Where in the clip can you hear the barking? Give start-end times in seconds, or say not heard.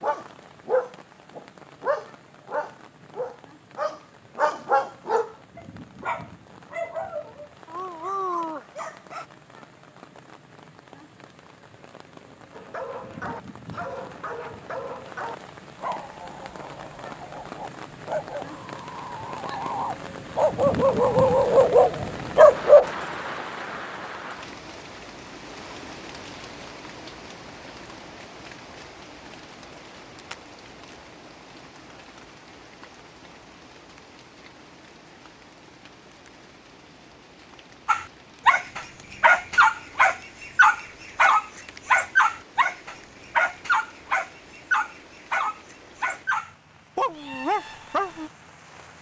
0.0-9.2, 12.5-22.9, 37.9-48.3.